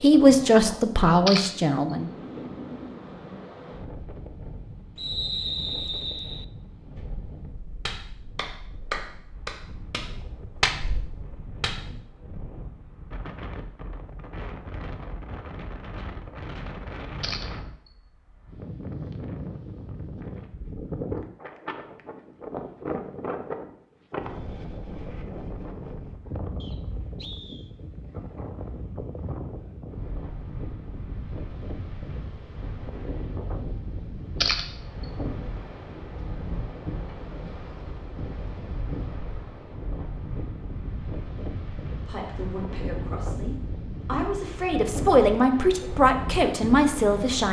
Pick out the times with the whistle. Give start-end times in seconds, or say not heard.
5.0-6.5, 26.6-27.7.